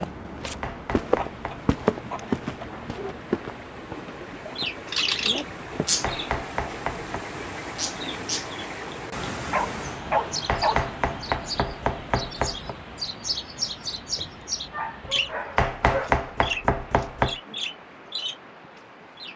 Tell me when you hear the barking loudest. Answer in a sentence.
The volume of the barking peaks at 10 seconds.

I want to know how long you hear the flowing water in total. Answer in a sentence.
You can hear the flowing water for 19 seconds altogether.